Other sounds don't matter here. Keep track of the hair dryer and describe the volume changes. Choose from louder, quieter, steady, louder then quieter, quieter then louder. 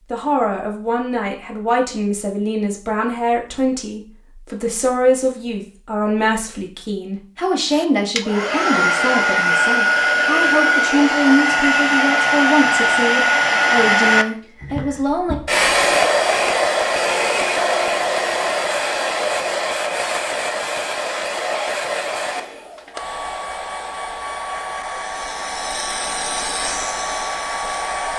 quieter.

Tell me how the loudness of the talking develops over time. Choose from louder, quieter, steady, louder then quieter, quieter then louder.
steady.